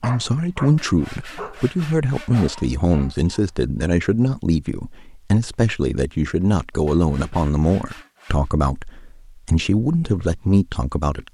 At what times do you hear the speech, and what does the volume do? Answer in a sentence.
The speech can be heard from 0.0 to 11.2 s, at a steady volume.